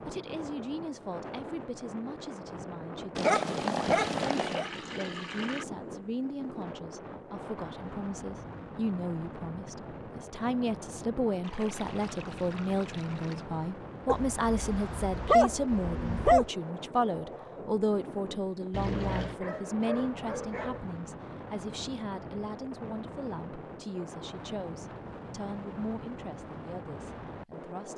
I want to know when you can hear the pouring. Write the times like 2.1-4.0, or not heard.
4.0-5.7, 11.4-13.4, 18.7-19.4.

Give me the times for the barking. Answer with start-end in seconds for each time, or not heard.
3.1-4.7, 14.1-16.4, 18.9-20.9.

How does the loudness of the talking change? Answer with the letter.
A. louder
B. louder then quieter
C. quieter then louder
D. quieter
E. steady
B.